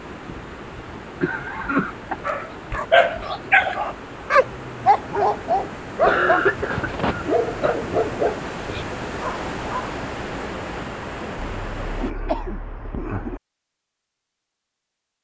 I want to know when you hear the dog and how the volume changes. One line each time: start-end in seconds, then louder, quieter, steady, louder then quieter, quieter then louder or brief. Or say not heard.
2.2-9.9 quieter.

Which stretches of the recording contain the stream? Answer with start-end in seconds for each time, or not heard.
0.0-12.2.